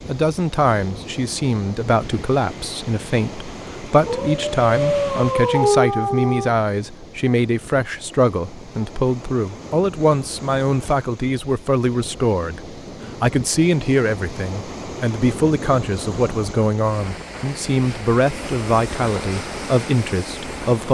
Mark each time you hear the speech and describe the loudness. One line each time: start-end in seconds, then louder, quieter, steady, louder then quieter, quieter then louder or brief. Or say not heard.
0.1-20.8 steady.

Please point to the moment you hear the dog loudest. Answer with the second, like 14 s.
6 s.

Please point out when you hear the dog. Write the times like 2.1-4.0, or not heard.
4.0-6.5.